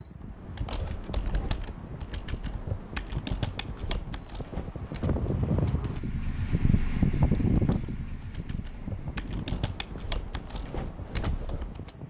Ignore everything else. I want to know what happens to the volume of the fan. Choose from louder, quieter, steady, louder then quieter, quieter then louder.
louder then quieter.